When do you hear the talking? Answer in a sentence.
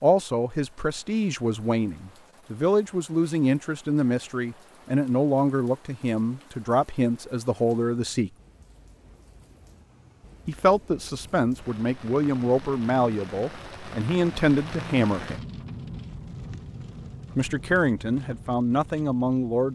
The talking can be heard from 0.0 to 8.3 s, from 10.4 to 15.4 s and from 17.4 to 19.6 s.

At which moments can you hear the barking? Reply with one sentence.
The barking can't be heard in this clip.